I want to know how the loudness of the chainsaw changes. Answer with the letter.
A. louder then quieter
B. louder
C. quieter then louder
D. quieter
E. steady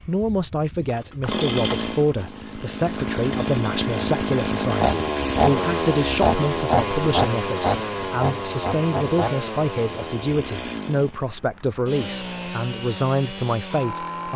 A.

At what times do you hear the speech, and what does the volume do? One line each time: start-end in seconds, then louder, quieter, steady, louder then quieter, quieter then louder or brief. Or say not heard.
0.1-14.3 steady.